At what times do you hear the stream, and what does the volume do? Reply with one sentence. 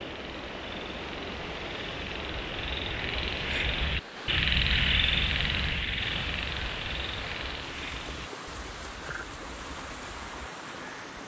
The stream can be heard from 0.0 to 11.2 s, at a steady volume.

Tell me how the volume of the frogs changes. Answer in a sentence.
The loudness of the frogs goes up, then down.